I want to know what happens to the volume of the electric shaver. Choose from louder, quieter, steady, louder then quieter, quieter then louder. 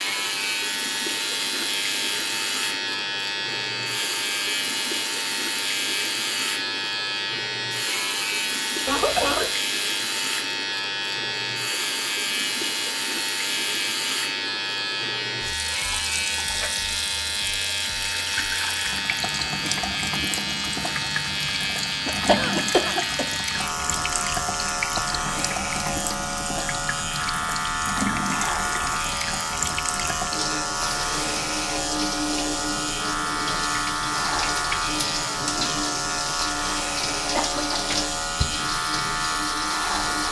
steady.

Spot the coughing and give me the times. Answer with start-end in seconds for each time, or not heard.
8.8-9.5, 22.1-23.2, 37.4-38.5.